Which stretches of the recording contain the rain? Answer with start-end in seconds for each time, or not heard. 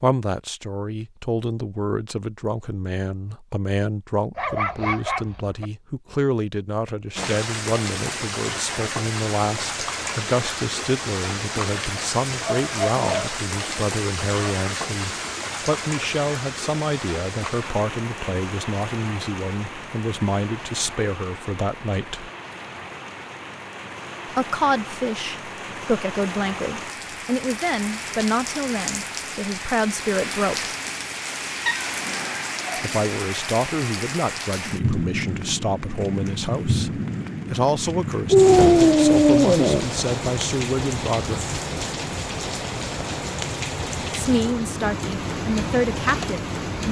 7.2-46.8.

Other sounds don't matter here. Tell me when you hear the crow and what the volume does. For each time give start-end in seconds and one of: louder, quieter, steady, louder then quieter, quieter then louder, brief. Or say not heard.
not heard.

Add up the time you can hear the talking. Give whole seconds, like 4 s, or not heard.
40 s.